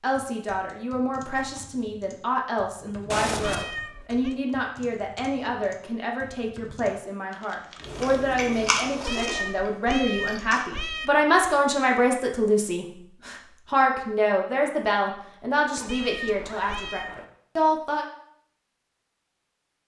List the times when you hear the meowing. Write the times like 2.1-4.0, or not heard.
3.4-4.3, 9.1-11.1, 15.8-17.1.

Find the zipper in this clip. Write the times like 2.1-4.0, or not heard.
3.1-3.7, 7.8-9.6, 15.7-17.2.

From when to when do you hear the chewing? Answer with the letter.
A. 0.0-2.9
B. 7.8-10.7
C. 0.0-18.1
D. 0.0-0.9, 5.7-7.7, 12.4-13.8
B.